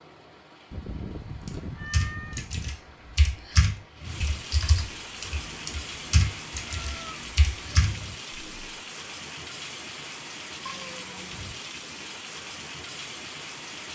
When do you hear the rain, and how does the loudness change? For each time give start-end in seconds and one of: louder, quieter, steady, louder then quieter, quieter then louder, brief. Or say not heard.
0.0-13.8 louder.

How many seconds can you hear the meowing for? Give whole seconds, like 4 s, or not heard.
5 s.